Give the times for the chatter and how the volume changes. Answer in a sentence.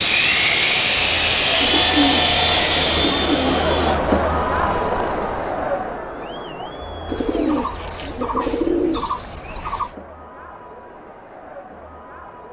The chatter can be heard from 0.0 to 12.4 s, getting louder then quieter.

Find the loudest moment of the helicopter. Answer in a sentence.
The loudest moment of the helicopter is at 2 seconds.